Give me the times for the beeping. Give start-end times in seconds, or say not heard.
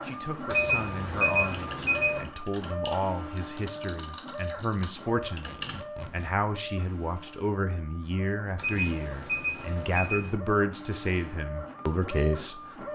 0.5-2.2, 8.6-10.3.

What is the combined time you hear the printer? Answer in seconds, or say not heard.
13 s.